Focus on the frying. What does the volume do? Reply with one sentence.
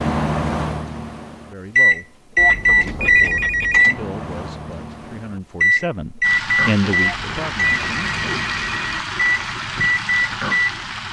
The volume of the frying stays about the same.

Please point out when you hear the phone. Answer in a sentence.
You can hear the phone from 2.4 to 3.9 s and from 7.0 to 9.0 s.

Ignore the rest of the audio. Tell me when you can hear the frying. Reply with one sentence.
You can hear the frying from 6.2 to 11.0 s.